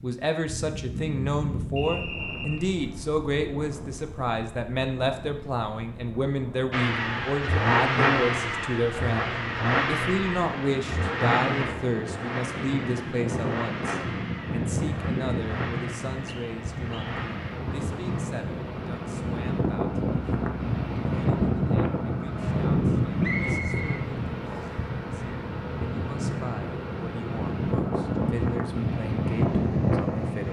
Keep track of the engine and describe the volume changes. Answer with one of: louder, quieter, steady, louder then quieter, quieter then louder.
quieter.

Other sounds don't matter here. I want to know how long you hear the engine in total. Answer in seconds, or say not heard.
24 s.